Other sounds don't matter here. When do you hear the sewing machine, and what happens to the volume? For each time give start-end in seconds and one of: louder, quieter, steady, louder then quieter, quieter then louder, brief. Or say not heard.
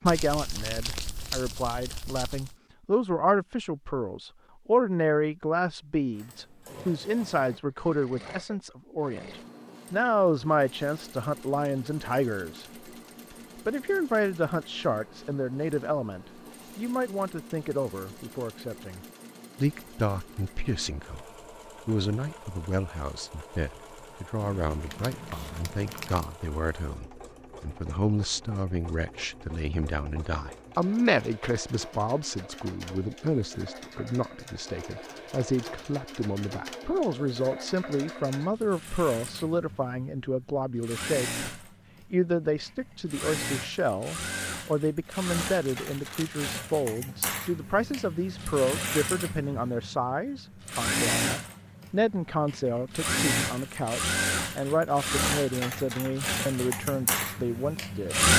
6.1-58.3 louder.